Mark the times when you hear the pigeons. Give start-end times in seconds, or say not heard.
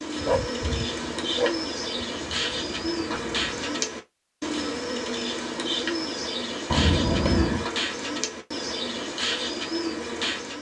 0.0-10.5.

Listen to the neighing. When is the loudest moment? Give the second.
7 s.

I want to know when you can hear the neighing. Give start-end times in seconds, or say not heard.
2.1-3.7, 6.7-7.7.